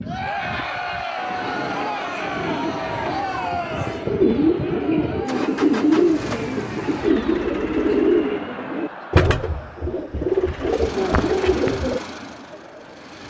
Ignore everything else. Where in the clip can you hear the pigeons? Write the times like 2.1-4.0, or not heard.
1.1-12.0.